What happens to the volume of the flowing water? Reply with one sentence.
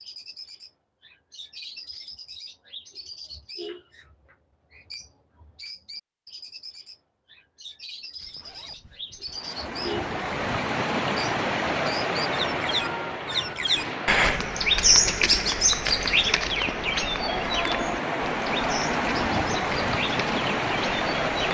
The loudness of the flowing water goes down, then up.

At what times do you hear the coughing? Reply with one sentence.
You can't hear the coughing here.